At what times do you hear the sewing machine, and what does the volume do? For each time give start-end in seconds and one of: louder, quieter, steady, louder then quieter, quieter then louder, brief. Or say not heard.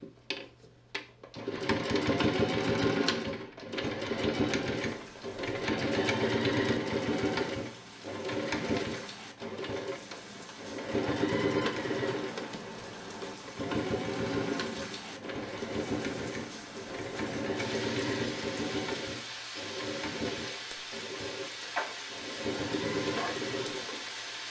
0.0-24.4 quieter.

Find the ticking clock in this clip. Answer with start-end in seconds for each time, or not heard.
not heard.